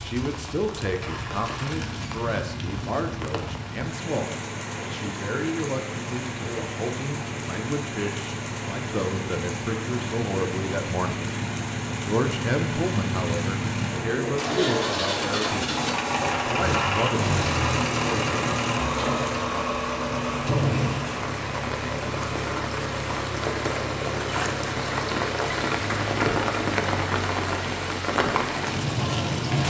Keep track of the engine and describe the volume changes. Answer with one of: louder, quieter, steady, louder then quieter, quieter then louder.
louder then quieter.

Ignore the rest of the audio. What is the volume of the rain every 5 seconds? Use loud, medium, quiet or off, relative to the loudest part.
medium, medium, medium, medium, medium, loud.